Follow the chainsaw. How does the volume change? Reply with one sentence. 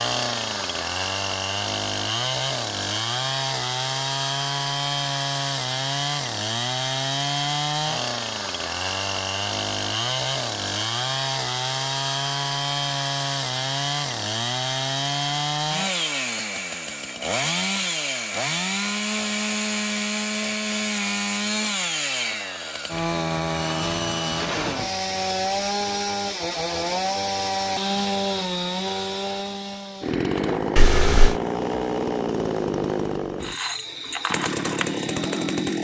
The loudness of the chainsaw stays about the same.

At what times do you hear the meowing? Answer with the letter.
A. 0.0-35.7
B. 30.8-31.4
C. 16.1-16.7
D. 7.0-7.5
B.